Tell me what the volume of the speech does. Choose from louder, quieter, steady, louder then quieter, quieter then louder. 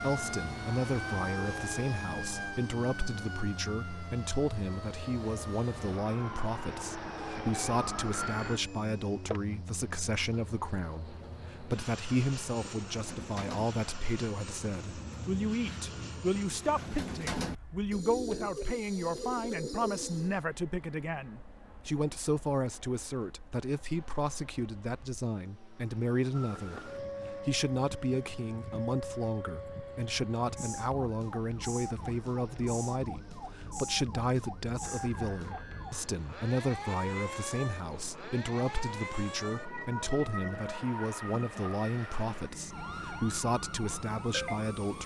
steady.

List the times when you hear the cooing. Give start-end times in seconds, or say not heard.
10.0-20.4.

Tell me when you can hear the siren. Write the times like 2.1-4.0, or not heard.
0.0-8.6, 26.3-45.0.